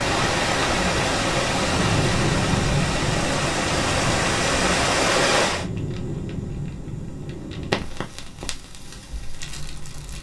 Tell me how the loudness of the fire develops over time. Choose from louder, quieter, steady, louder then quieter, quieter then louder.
quieter.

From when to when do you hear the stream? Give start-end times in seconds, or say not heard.
0.0-5.7.